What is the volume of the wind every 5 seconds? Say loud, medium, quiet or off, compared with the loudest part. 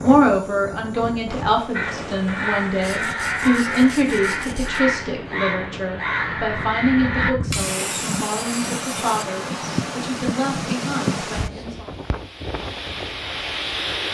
medium, loud, loud.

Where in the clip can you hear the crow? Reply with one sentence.
The crow can be heard from 1.7 to 7.3 s.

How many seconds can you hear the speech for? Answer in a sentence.
You can hear the speech for 12 seconds altogether.